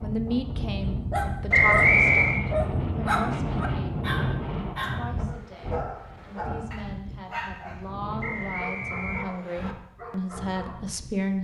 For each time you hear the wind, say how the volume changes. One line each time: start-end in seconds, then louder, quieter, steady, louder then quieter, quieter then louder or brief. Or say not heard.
0.0-11.3 quieter.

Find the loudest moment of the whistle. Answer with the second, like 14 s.
2 s.